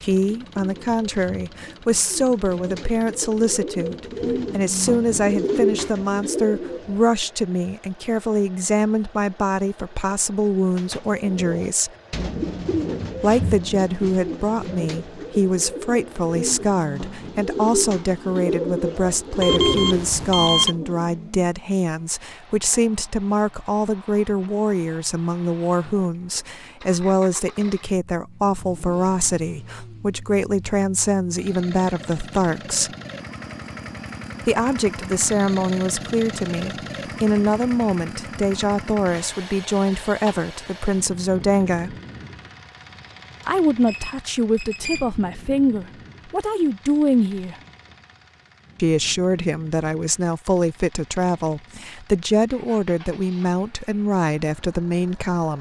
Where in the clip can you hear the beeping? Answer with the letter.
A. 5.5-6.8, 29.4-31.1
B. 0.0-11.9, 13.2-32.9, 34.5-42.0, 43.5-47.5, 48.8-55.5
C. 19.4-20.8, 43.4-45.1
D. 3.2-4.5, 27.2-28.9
C.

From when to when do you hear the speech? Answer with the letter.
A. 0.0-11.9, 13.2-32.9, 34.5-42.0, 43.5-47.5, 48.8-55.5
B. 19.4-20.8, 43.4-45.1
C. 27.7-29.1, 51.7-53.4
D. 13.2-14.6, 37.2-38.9
A.